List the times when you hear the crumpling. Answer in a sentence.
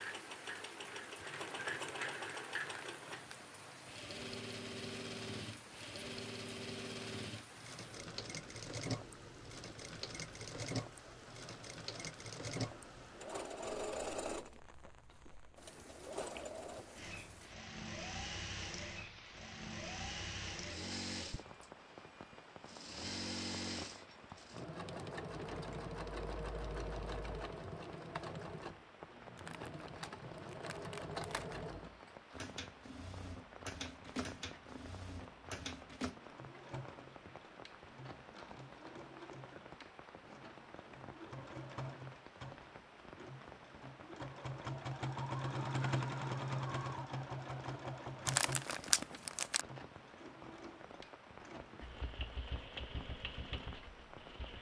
The crumpling can be heard from 2.6 to 3.5 s, from 29.4 to 31.6 s and from 48.2 to 49.6 s.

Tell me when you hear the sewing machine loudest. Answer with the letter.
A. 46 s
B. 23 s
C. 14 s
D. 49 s
A.